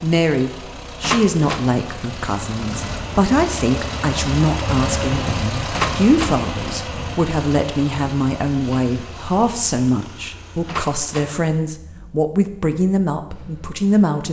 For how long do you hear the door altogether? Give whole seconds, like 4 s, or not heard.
2 s.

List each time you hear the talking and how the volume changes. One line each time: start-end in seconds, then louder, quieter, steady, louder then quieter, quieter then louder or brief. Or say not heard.
0.0-14.2 steady.